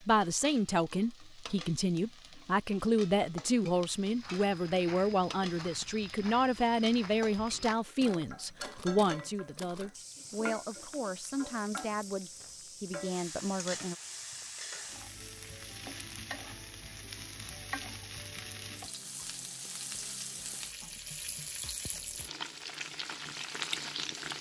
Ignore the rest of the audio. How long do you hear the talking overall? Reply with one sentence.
The talking can be heard for 14 seconds in total.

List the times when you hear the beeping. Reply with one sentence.
You can't hear the beeping here.